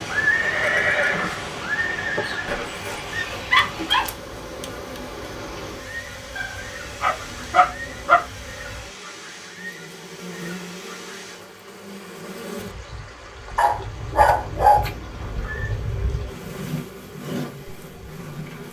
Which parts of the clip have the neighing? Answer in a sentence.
The neighing can be heard from 0.1 to 2.6 s and from 14.1 to 15.8 s.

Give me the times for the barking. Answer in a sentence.
You can hear the barking from 2.5 to 4.1 s, from 6.3 to 8.2 s and from 13.6 to 14.8 s.